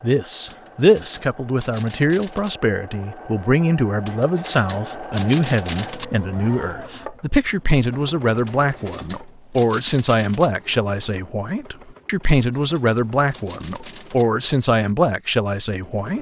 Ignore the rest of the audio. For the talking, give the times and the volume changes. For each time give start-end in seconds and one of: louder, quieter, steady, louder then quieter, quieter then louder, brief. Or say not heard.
0.0-16.1 steady.